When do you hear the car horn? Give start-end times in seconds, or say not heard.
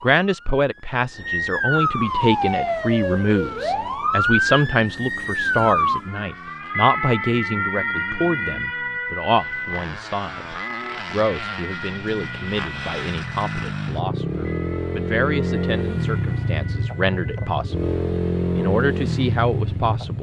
not heard.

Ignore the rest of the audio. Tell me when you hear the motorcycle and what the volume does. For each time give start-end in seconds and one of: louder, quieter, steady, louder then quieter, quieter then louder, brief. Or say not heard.
1.9-20.1 louder.